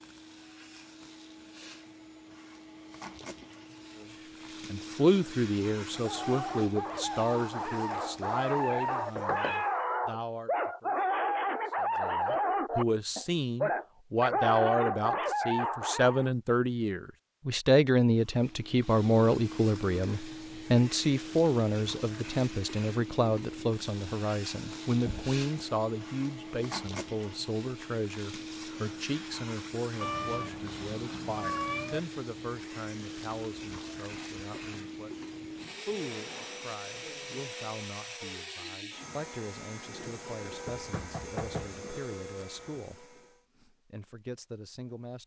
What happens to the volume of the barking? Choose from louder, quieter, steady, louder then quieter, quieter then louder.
louder.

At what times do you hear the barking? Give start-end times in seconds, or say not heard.
5.9-16.3.